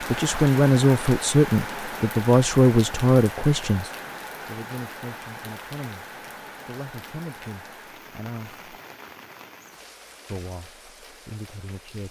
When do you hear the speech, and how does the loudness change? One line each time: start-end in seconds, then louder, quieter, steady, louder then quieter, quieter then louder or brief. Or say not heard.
0.0-8.7 quieter
10.2-12.0 brief.